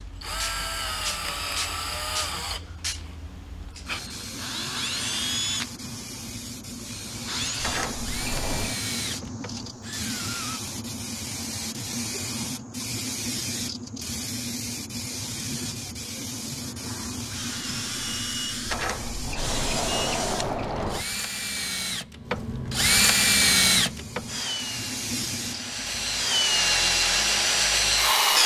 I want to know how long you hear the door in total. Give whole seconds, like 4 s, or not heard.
4 s.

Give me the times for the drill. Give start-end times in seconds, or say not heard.
0.0-10.6, 17.2-28.4.